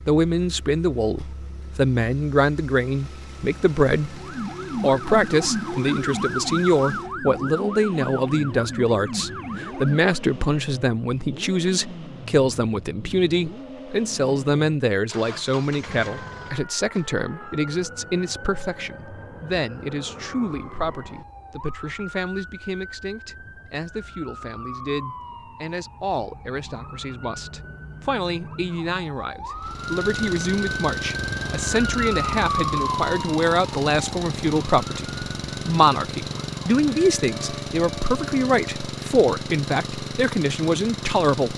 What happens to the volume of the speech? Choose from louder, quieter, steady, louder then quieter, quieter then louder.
quieter then louder.